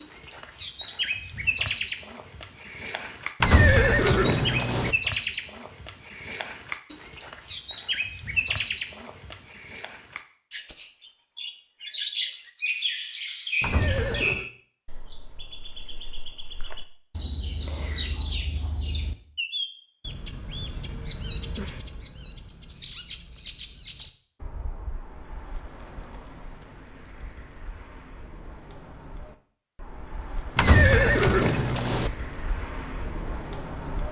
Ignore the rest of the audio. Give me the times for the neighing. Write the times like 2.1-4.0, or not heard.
3.4-5.0, 13.6-14.4, 30.6-32.1.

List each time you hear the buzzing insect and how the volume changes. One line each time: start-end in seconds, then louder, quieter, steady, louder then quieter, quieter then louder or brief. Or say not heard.
not heard.